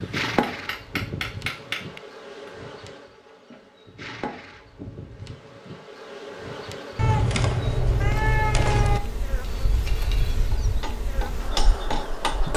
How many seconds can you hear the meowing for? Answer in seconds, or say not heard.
2 s.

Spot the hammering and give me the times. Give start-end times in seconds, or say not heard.
0.0-2.5, 9.4-12.5.